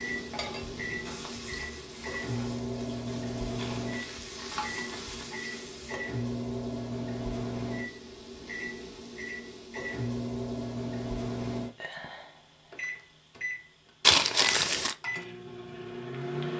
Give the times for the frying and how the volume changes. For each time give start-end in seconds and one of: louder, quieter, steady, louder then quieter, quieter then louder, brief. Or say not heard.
0.0-6.0 quieter then louder.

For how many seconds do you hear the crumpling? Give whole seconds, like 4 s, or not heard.
3 s.